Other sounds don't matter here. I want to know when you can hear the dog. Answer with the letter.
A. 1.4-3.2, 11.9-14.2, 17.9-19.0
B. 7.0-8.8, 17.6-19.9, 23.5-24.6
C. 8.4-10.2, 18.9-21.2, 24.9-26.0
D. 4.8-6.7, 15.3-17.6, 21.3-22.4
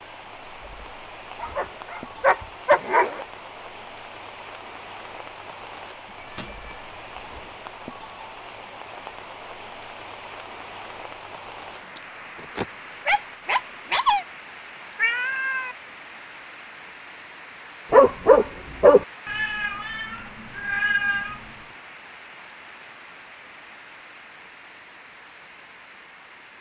A.